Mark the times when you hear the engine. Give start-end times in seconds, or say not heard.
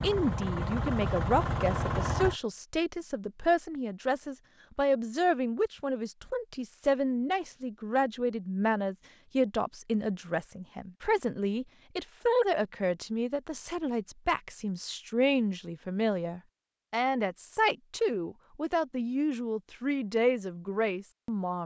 0.0-2.4.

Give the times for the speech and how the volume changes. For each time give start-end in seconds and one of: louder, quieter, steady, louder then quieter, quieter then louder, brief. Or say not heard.
0.0-21.6 steady.